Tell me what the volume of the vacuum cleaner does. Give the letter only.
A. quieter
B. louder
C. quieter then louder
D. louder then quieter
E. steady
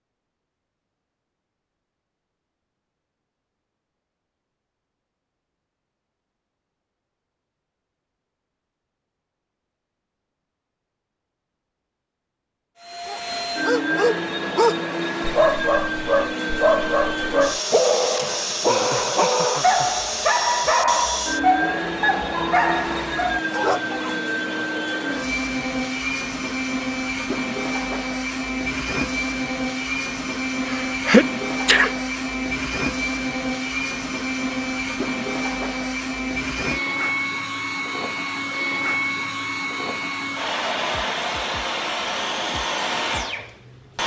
E.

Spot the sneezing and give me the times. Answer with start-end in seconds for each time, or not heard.
30.6-31.9.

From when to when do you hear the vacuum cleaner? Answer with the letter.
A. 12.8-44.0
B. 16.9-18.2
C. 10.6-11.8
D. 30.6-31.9
A.